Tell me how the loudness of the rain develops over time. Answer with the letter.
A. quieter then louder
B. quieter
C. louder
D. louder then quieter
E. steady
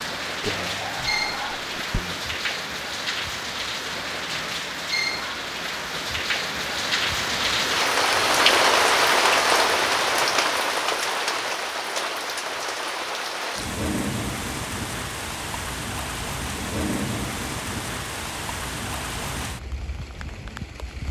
D.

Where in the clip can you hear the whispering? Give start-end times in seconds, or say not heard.
0.4-2.2.